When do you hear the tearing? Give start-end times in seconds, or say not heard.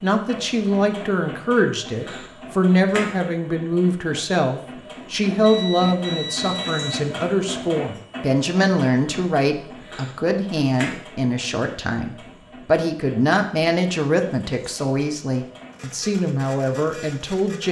not heard.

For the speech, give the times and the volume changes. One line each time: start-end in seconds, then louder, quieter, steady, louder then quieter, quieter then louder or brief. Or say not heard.
0.0-17.6 steady.